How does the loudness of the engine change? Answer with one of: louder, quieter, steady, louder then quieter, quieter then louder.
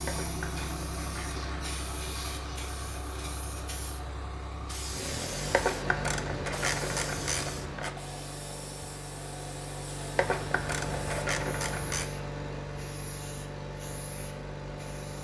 steady.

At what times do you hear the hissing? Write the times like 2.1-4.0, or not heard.
0.0-15.1.